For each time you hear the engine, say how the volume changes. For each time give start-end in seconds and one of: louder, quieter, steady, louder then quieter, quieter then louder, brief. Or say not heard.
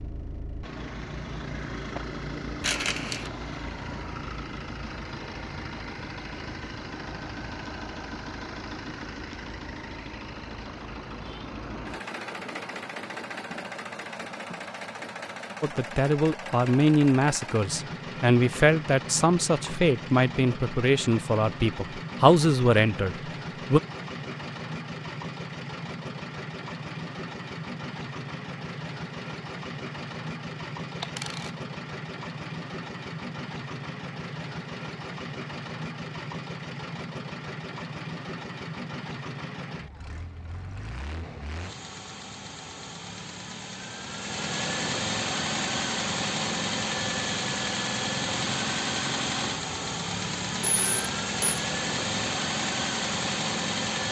0.0-54.0 louder.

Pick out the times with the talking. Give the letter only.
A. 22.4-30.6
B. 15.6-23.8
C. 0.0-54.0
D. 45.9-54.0
B.